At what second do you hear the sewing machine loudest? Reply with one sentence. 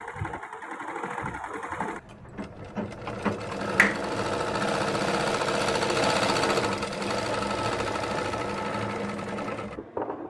The volume of the sewing machine peaks at 6 seconds.